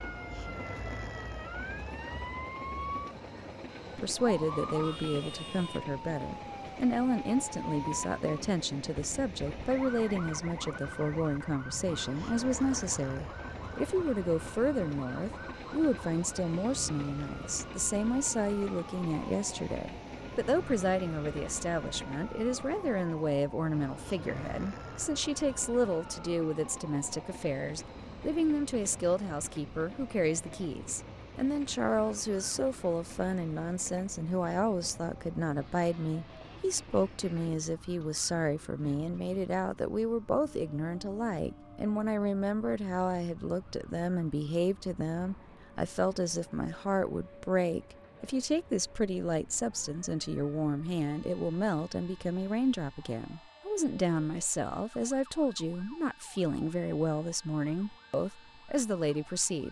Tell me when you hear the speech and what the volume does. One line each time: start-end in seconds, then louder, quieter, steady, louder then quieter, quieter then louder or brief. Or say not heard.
4.0-59.6 steady.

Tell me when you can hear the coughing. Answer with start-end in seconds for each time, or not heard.
not heard.